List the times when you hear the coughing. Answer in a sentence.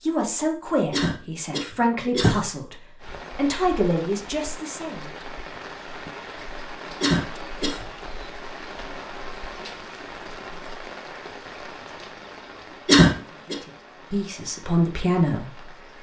You can hear the coughing from 0.9 to 2.4 s, from 7.0 to 7.8 s and from 12.8 to 13.6 s.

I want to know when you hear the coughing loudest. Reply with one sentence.
The loudest moment of the coughing is at 13 seconds.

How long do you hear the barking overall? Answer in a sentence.
The barking can't be heard in this clip.